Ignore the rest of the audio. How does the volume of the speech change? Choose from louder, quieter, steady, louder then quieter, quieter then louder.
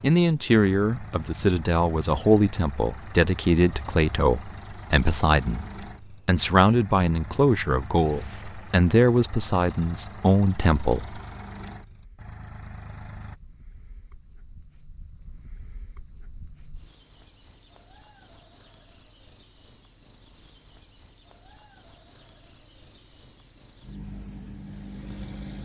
steady.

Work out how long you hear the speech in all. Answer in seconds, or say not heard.
11 s.